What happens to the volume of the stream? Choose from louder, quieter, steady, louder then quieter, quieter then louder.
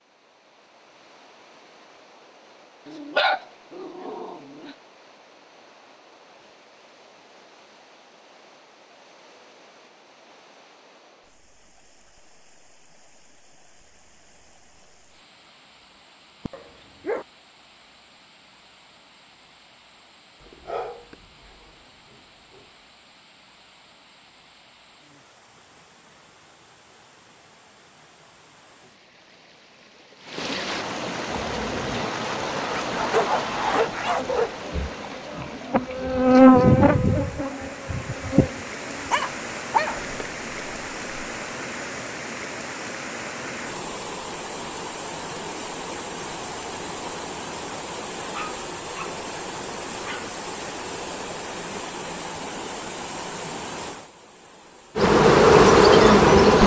louder.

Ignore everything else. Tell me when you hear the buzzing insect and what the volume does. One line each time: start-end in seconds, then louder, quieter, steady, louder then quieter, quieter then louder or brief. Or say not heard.
31.2-39.1 louder then quieter
55.0-56.6 brief.